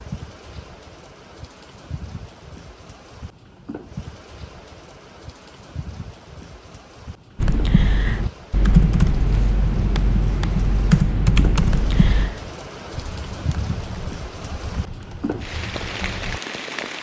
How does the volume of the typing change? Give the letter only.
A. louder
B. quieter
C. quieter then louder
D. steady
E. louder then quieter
B.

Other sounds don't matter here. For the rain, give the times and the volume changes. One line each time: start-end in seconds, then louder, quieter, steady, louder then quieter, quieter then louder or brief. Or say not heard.
0.0-16.9 louder.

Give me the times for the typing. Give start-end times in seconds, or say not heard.
7.4-16.4.